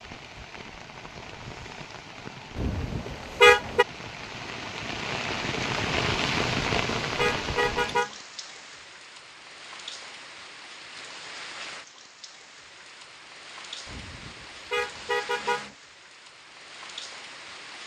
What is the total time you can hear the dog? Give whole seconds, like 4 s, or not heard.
not heard.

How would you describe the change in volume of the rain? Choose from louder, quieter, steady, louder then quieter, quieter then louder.
louder then quieter.